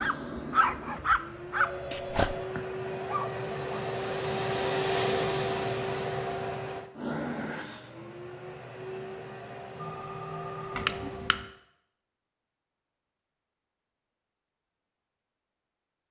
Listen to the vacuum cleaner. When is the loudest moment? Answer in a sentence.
The loudest moment of the vacuum cleaner is at 5 seconds.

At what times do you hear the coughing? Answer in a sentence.
The coughing can be heard from 10.8 to 11.4 s.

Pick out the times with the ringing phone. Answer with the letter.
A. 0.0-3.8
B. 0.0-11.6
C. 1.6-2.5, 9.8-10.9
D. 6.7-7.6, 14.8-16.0
C.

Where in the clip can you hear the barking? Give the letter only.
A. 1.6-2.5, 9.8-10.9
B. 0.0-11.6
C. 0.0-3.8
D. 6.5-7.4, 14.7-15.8
C.